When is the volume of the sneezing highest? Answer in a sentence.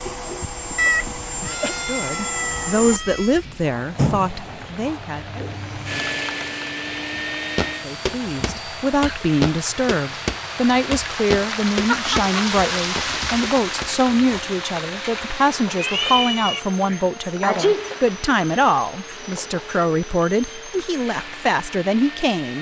The volume of the sneezing peaks at 18 seconds.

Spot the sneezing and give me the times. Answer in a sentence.
You can hear the sneezing from 0.1 to 1.8 s, from 8.4 to 9.2 s and from 16.9 to 18.0 s.